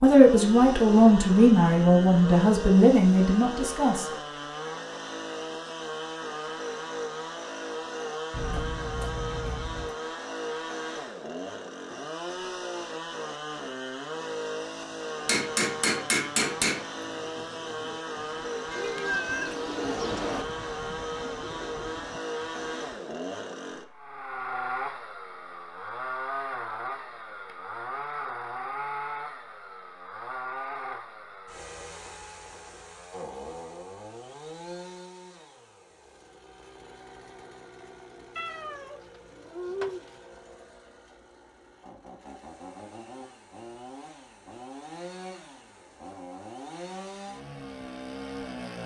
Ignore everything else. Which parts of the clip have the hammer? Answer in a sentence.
The hammer can be heard from 15.2 to 16.9 s.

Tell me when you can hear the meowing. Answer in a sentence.
You can hear the meowing from 8.3 to 9.9 s, from 18.7 to 20.4 s and from 38.4 to 40.1 s.